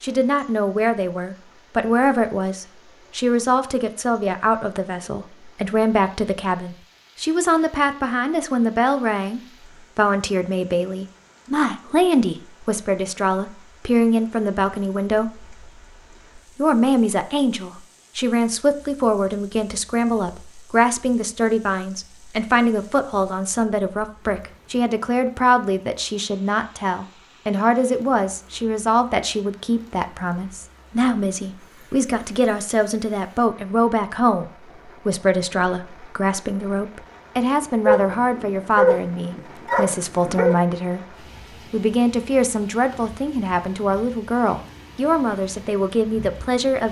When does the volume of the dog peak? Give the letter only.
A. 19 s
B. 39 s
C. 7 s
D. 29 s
B.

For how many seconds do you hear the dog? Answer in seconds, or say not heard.
3 s.